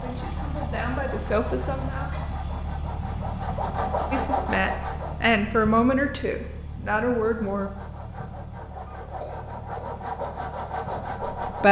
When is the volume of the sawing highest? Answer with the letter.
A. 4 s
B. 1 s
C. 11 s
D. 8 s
A.